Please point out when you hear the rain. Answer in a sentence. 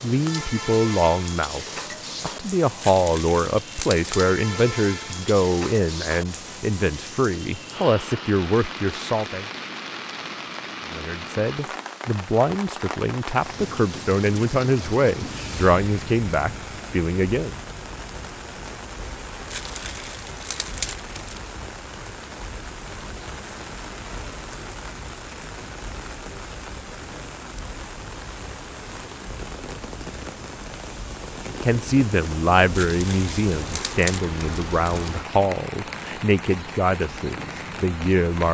The rain can be heard from 0.0 to 38.4 s.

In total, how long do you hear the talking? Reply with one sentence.
The talking can be heard for 23 seconds in total.